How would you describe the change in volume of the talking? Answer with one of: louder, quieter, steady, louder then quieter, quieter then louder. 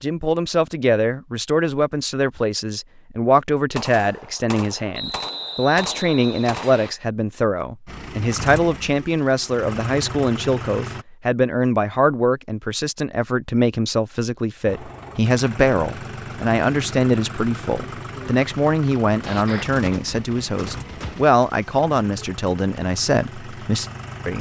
steady.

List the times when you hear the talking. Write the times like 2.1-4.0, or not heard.
0.0-24.3.